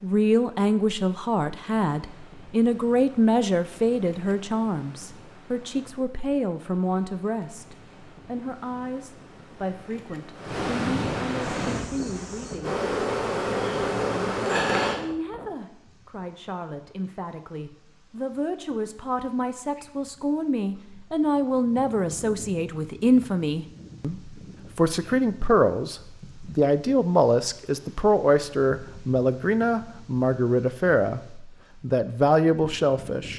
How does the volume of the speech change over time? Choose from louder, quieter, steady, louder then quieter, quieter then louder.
quieter then louder.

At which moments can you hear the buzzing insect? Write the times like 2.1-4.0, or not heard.
11.4-15.0.